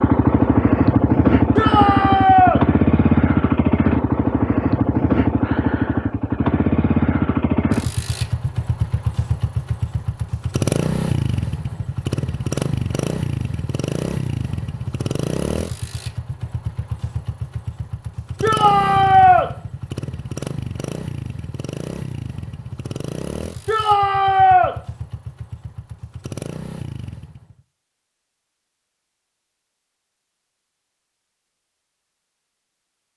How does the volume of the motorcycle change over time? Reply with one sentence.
The volume of the motorcycle goes down.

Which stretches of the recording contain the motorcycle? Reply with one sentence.
The motorcycle can be heard from 0.0 to 27.6 s.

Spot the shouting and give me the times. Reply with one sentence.
You can hear the shouting from 1.6 to 2.6 s, from 18.4 to 19.5 s and from 23.6 to 24.8 s.